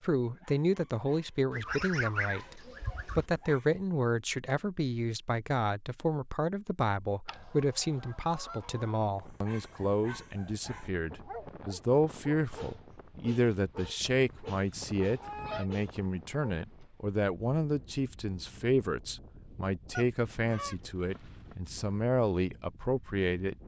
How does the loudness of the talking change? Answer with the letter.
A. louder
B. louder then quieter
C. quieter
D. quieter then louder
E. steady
E.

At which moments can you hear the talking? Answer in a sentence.
The talking can be heard from 0.0 to 23.6 s.